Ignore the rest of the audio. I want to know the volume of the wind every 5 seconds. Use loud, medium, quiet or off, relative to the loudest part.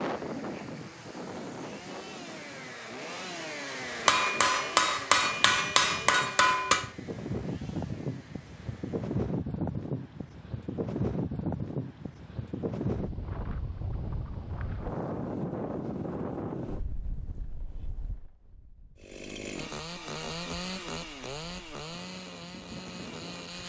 medium, loud, loud, loud, quiet.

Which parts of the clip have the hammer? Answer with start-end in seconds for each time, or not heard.
4.0-6.9.